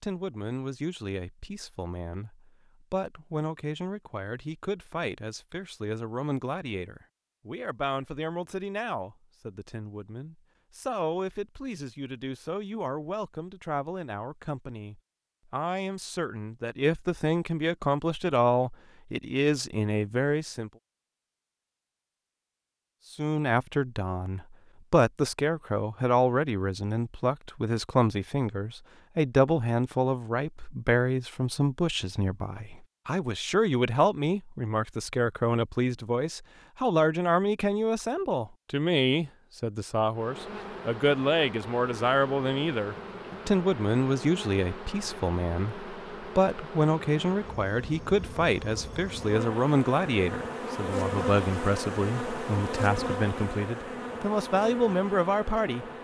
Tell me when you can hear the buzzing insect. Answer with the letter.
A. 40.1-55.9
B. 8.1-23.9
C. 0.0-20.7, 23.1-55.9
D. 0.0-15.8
A.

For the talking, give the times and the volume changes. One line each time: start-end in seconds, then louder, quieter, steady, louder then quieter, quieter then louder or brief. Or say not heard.
0.0-20.7 louder
23.1-55.9 steady.